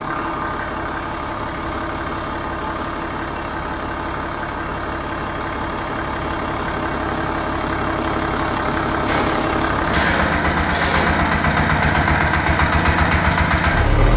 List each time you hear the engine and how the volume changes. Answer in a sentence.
You can hear the engine from 0.0 to 14.1 s, getting louder.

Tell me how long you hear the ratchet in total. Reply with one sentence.
The ratchet can be heard for 2 seconds in total.